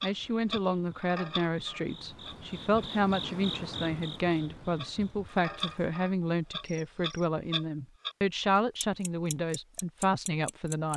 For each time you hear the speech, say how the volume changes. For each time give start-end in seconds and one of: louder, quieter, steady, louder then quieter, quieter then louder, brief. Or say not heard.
0.0-10.9 steady.